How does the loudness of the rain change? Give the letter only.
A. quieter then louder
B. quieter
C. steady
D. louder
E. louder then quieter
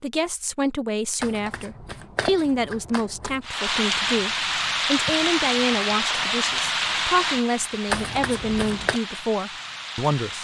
B.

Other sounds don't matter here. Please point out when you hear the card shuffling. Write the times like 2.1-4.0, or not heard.
1.2-3.4, 7.9-9.0.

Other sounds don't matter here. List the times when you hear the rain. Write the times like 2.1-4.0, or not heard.
3.4-10.4.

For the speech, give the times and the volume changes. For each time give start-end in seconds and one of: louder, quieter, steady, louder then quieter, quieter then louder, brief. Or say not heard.
0.0-10.4 steady.